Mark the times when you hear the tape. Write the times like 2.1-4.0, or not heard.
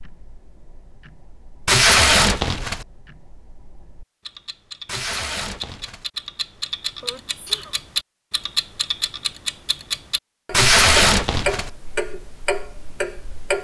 1.6-2.9, 4.8-6.0, 10.5-11.7.